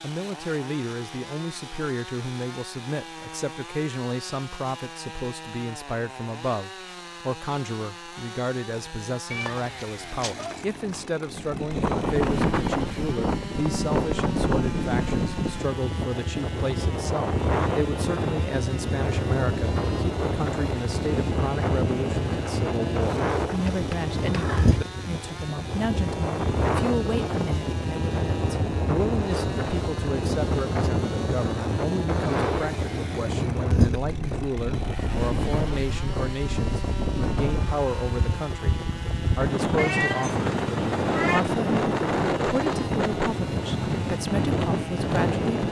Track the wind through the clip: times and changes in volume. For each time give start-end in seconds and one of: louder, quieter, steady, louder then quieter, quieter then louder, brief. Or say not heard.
11.2-45.6 steady.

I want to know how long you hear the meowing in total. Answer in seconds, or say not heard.
5 s.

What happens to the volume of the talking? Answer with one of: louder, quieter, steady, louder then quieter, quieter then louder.
steady.